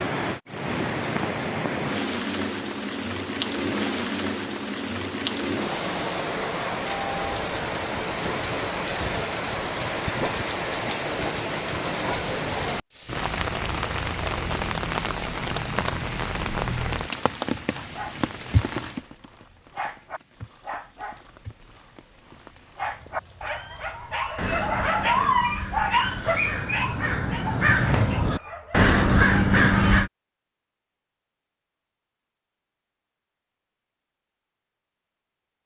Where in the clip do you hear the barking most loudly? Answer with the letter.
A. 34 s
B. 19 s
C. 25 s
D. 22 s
C.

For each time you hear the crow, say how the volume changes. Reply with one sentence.
The crow can be heard from 24.4 to 30.1 s, getting louder.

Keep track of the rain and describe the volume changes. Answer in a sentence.
The loudness of the rain goes down.